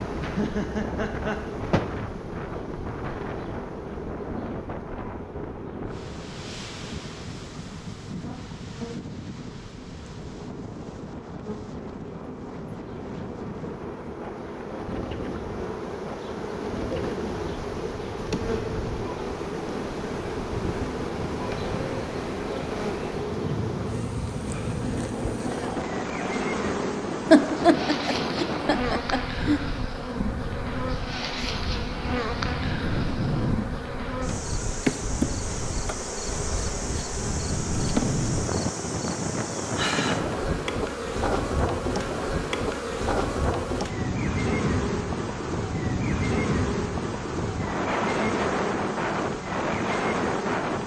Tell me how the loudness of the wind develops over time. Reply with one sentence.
The loudness of the wind goes up.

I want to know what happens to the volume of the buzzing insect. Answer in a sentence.
The loudness of the buzzing insect goes up.